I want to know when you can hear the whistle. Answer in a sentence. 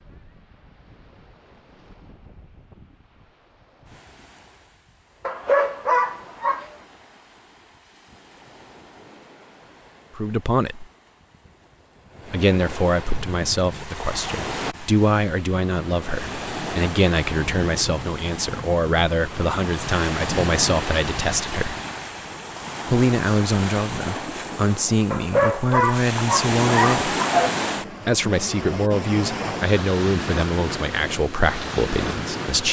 You can't hear the whistle here.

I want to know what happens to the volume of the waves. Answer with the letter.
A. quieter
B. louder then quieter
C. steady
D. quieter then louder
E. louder
E.